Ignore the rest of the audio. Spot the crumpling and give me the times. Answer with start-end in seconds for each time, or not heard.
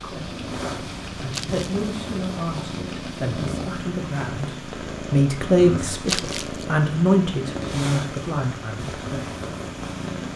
1.3-1.9, 6.0-6.7.